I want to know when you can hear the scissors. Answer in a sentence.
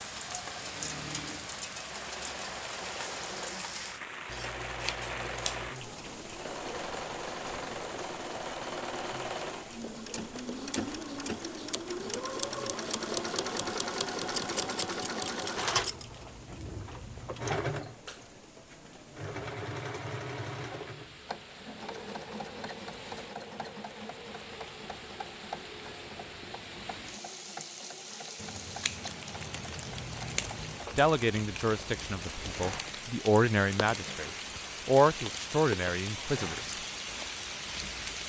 You can hear the scissors from 4.2 to 5.7 s, from 14.3 to 16.1 s and from 28.4 to 30.8 s.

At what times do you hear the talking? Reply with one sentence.
The talking can be heard from 30.9 to 36.8 s.